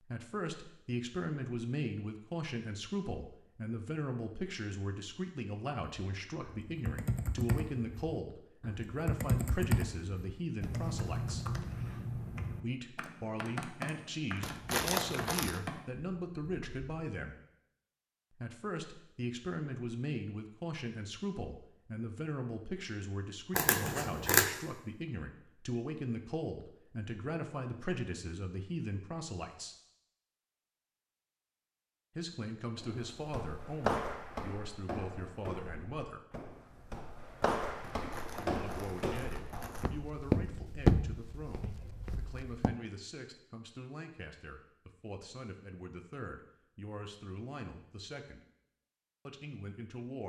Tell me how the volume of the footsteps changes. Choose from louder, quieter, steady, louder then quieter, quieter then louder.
quieter then louder.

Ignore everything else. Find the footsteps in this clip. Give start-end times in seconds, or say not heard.
32.8-42.8.